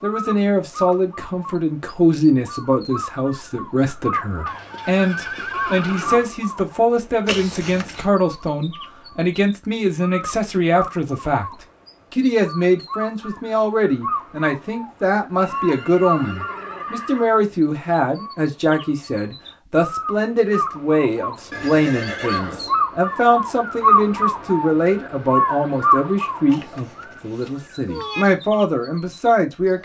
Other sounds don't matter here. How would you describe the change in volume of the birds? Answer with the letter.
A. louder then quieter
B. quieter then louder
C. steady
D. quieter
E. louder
E.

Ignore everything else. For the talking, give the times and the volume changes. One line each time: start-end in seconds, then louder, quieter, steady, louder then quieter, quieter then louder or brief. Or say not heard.
0.0-29.8 steady.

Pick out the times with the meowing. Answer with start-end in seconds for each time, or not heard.
7.2-8.1, 26.5-28.2.